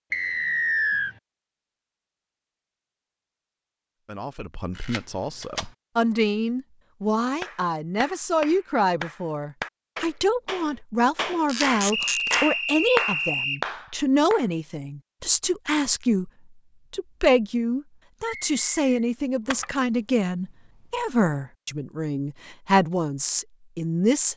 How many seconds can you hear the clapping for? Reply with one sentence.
You can hear the clapping for 7 seconds altogether.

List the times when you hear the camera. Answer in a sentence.
You can hear the camera from 4.8 to 5.7 s, from 11.4 to 12.4 s and from 19.4 to 21.1 s.